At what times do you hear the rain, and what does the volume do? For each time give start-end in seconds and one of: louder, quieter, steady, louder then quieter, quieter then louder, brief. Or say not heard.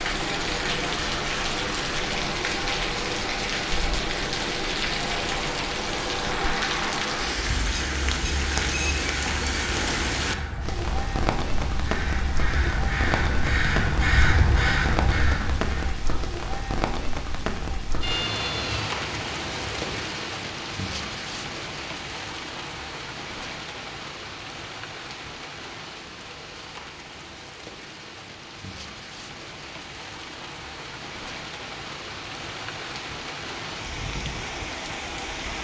0.0-35.6 quieter.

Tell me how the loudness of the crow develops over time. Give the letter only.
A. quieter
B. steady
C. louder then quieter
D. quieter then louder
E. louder
E.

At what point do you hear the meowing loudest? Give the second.
18 s.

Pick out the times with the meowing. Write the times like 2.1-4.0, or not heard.
18.0-19.9.